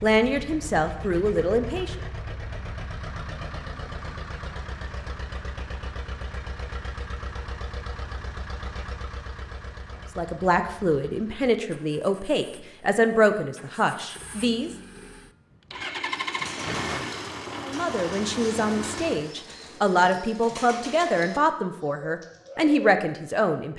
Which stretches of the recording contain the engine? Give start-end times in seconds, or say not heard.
0.0-19.3.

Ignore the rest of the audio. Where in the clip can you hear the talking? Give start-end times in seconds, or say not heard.
0.0-1.9, 10.2-14.7, 17.6-23.7.